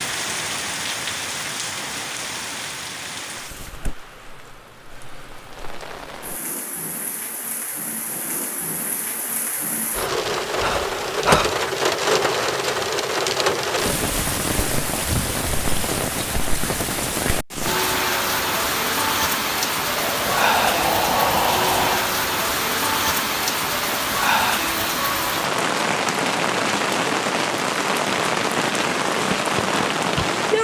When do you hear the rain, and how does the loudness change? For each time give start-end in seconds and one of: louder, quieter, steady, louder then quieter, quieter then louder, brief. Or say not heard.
0.0-30.5 louder.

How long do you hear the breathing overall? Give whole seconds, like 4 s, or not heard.
4 s.